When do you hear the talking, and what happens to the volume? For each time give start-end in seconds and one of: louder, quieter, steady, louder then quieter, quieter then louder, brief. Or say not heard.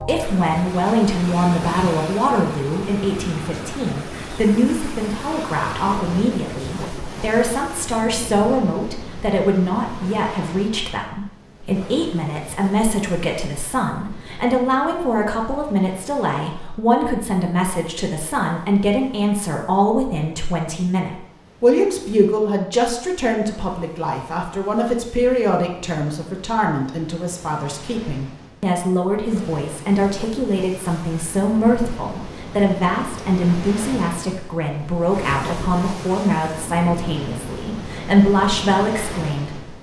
0.0-39.7 steady.